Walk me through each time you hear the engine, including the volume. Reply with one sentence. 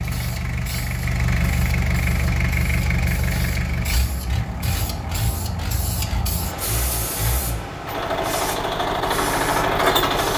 The engine can be heard from 0.0 to 10.3 s, getting quieter then louder.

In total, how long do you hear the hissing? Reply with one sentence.
You can hear the hissing for 10 seconds altogether.